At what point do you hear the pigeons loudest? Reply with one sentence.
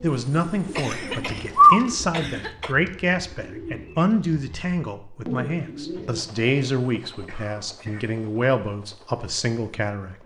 The volume of the pigeons peaks at 2 seconds.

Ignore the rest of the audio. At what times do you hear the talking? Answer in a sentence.
The talking can be heard from 0.0 to 10.2 s.